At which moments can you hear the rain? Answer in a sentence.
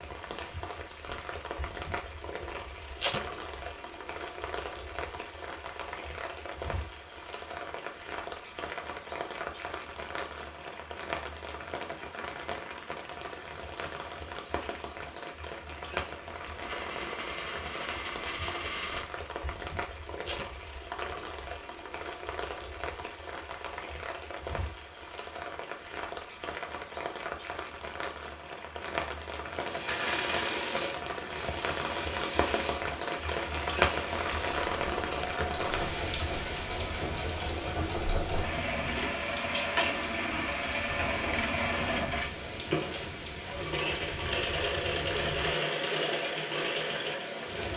The rain can be heard from 0.0 to 47.7 s.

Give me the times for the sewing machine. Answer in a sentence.
The sewing machine can be heard from 29.5 to 47.7 s.